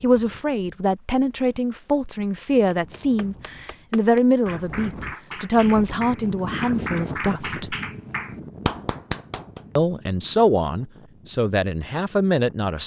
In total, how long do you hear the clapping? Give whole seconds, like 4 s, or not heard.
7 s.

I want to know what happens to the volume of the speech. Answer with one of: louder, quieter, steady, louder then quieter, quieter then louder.
steady.